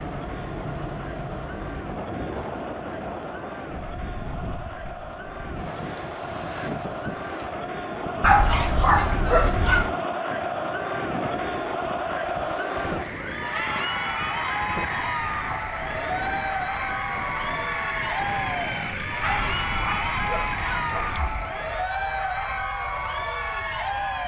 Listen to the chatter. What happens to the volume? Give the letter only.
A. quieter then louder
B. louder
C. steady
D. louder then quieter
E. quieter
B.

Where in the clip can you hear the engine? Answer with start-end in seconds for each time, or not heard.
12.9-21.9.